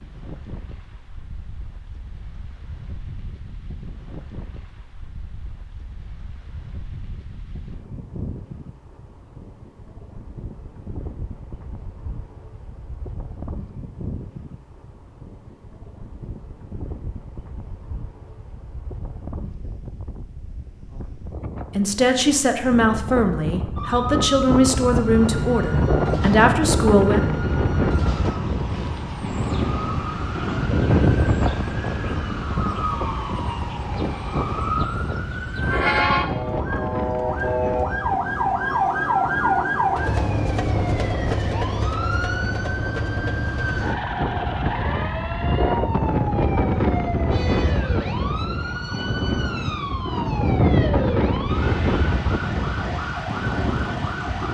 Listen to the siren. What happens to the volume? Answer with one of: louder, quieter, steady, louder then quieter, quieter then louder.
louder then quieter.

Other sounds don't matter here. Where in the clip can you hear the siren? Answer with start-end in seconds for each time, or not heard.
23.8-54.5.